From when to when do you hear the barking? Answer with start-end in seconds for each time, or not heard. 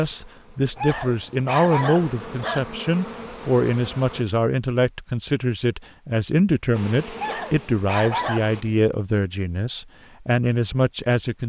0.8-2.6, 7.2-8.8.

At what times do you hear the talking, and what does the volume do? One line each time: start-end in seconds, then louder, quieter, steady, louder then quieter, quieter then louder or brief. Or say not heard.
0.0-11.4 steady.